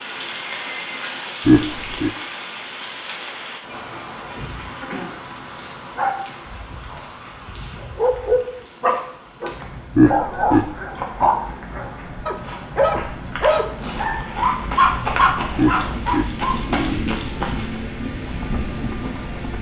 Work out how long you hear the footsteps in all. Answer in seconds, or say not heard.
8 s.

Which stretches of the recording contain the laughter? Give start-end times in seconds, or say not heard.
1.4-2.1, 9.9-10.7, 15.6-17.2.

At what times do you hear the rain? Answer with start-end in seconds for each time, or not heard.
0.0-19.5.